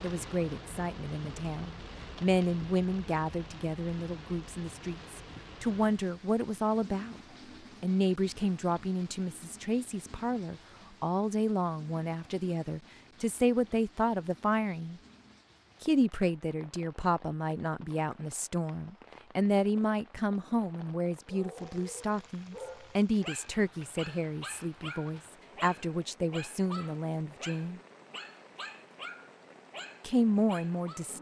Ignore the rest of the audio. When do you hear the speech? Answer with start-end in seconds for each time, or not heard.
0.0-7.2, 7.8-15.0, 15.8-27.8, 30.0-31.1.